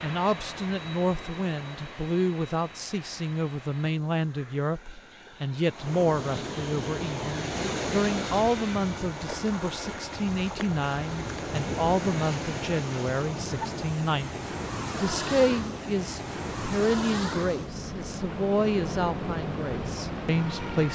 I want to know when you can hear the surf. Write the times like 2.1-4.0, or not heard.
0.0-20.8.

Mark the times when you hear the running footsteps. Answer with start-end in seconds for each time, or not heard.
not heard.